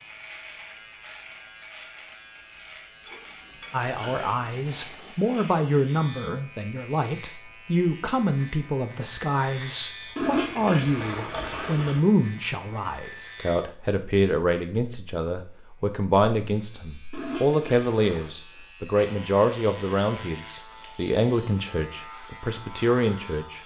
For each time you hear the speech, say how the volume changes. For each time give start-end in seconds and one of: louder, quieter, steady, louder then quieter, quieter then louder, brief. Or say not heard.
3.7-23.6 steady.